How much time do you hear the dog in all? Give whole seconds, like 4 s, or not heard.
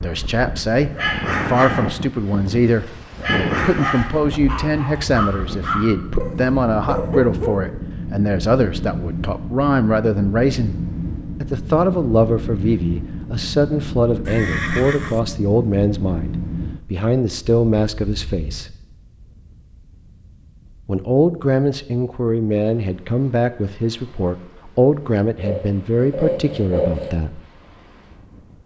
7 s.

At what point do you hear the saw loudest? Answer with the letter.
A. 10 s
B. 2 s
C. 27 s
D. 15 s
C.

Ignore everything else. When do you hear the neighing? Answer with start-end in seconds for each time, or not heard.
14.2-15.2.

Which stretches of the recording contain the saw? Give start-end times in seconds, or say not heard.
25.4-27.1.